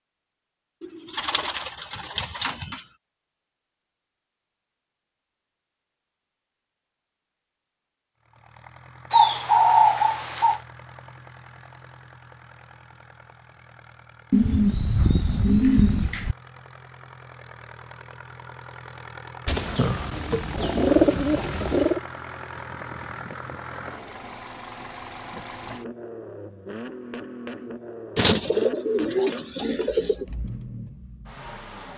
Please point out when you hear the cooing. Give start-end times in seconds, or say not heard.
0.8-2.8, 9.1-10.6, 14.3-16.4, 19.4-22.0, 28.1-30.2.